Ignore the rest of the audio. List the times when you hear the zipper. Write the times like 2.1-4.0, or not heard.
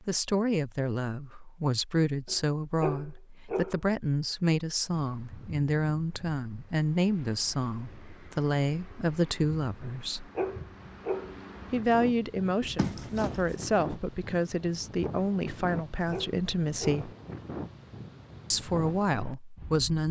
12.6-13.6.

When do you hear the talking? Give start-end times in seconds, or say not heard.
0.1-10.3, 11.7-17.1, 18.5-20.0.